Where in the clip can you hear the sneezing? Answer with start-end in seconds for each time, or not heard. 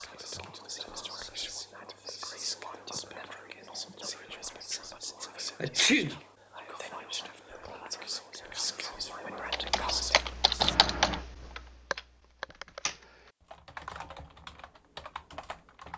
5.6-6.2, 10.6-11.2.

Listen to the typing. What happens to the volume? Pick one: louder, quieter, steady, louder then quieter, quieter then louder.
quieter.